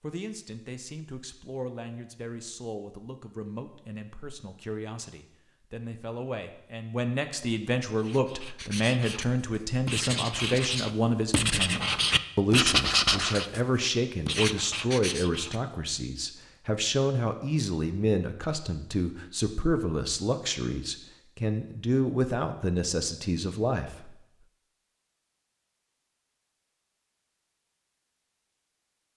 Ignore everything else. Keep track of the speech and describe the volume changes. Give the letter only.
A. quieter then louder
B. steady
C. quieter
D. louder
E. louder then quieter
D.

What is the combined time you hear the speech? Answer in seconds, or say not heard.
24 s.